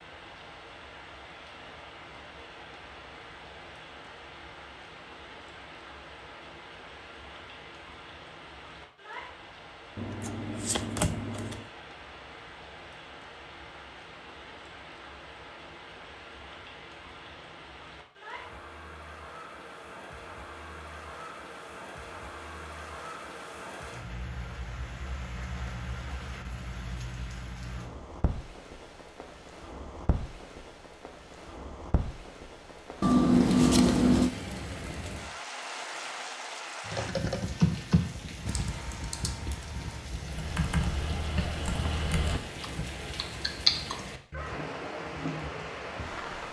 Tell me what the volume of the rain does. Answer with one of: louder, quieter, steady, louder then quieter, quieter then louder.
louder.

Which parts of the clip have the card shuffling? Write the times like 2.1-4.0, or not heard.
9.9-11.7, 33.0-34.3.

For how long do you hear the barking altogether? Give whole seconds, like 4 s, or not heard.
not heard.